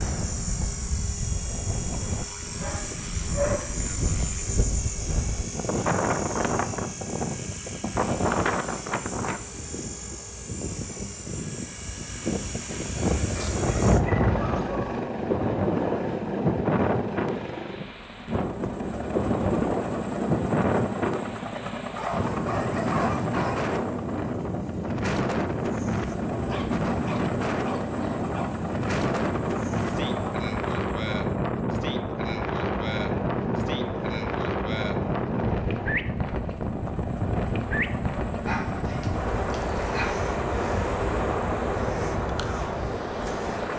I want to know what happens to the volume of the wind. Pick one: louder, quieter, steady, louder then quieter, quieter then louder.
steady.